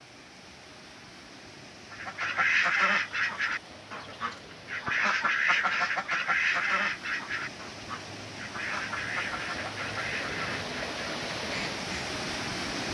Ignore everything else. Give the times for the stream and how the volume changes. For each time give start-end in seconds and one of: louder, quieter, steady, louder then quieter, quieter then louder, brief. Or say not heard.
0.0-12.9 louder.